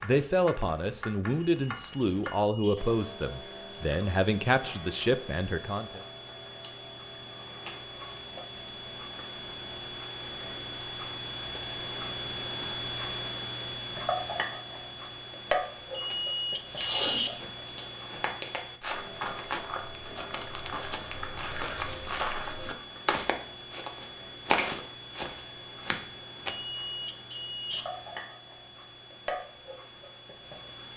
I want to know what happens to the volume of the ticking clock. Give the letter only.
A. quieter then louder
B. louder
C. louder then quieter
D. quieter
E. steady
C.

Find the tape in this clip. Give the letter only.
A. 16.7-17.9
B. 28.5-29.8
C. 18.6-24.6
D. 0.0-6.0
A.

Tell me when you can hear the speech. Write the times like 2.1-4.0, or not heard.
0.0-6.0.